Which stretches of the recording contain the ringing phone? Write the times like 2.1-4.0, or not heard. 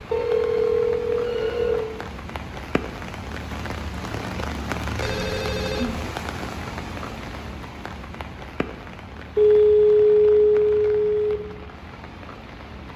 0.1-1.9, 5.0-6.0, 9.3-11.3.